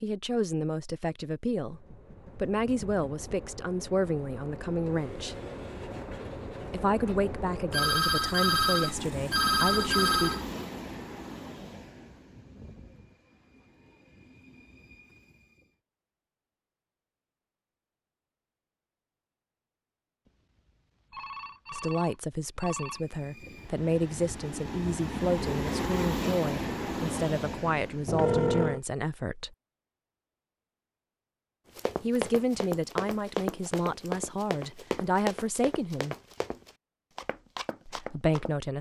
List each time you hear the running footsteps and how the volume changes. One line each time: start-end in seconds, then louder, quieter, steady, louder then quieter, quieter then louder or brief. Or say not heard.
31.8-38.6 quieter.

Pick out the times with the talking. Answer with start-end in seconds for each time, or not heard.
0.0-5.3, 6.7-10.3, 21.7-29.5, 32.0-36.1, 37.9-38.7.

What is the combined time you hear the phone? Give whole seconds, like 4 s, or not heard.
6 s.